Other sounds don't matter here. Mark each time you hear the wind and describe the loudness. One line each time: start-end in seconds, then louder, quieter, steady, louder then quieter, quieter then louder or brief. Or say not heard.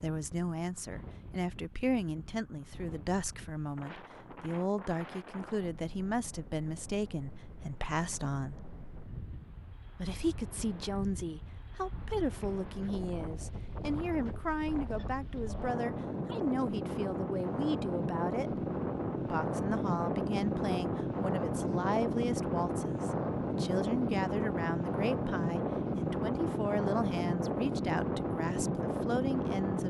0.0-29.8 louder.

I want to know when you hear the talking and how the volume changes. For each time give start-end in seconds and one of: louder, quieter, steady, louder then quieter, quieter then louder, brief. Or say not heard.
0.0-8.6 steady
9.9-29.8 steady.